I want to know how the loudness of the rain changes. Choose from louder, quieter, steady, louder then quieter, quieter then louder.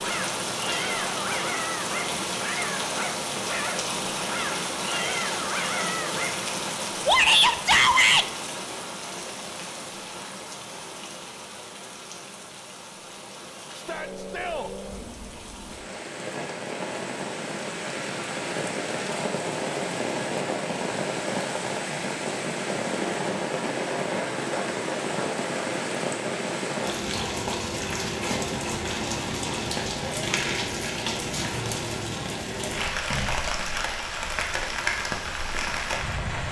quieter then louder.